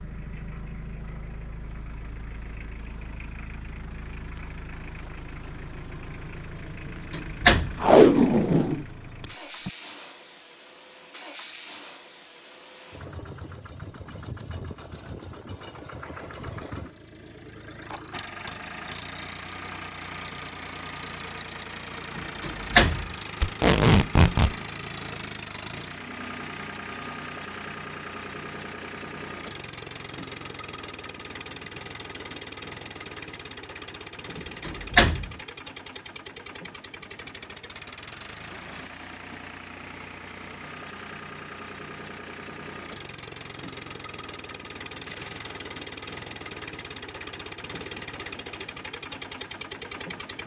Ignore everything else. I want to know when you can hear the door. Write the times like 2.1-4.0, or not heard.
6.8-7.8, 22.1-23.1, 34.4-35.4.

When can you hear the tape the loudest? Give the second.
8 s.